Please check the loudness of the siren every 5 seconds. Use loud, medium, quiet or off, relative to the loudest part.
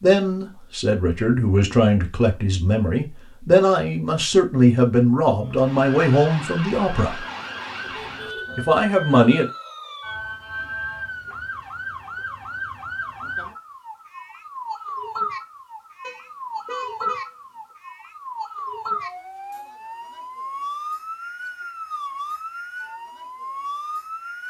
off, loud, loud, loud, loud.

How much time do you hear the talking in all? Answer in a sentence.
The talking can be heard for 8 seconds in total.